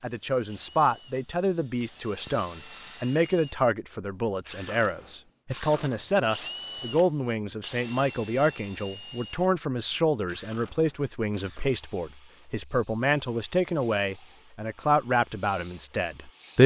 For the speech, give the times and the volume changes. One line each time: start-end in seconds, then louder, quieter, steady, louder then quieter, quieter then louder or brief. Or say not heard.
0.0-16.6 steady.